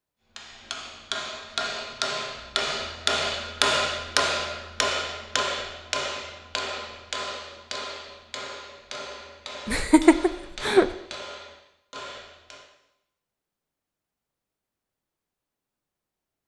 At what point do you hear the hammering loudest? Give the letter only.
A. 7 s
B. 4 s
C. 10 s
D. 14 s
B.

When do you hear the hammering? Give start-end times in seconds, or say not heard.
0.3-12.7.